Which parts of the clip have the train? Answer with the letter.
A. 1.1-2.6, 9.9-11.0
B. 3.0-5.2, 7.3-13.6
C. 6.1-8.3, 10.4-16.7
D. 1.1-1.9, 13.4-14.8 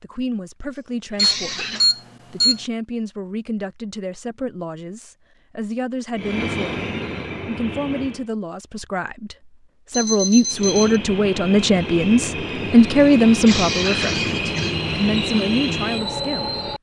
C.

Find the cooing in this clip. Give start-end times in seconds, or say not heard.
not heard.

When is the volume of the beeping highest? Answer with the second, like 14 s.
2 s.